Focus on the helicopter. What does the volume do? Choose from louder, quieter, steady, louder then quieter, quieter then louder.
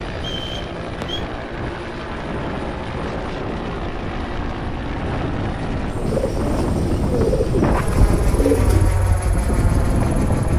steady.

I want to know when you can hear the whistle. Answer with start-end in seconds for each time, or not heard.
0.1-1.2.